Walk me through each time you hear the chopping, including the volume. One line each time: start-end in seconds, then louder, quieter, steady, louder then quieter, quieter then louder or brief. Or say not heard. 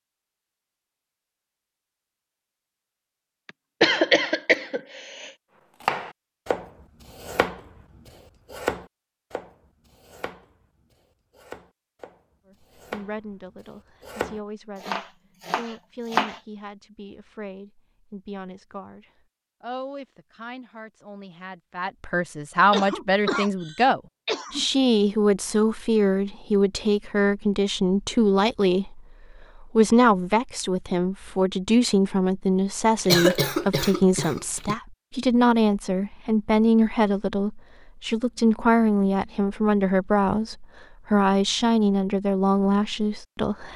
5.8-16.4 quieter then louder.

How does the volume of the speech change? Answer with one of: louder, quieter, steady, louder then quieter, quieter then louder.
louder.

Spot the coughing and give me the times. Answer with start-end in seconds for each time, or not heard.
3.5-5.3, 22.7-24.6, 33.0-34.8.